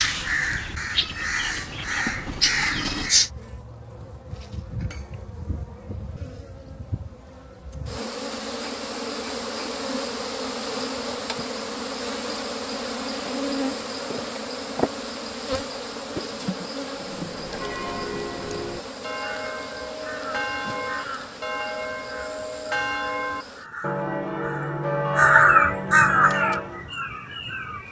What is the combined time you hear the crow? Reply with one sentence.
The crow can be heard for 12 seconds in total.